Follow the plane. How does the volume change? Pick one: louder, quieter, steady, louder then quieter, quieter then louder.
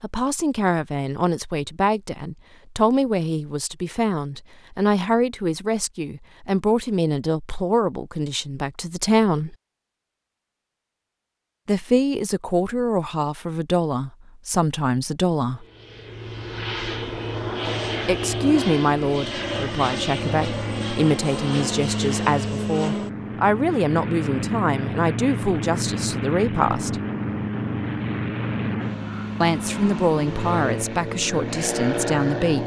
steady.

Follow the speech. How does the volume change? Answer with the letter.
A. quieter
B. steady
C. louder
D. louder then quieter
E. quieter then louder
B.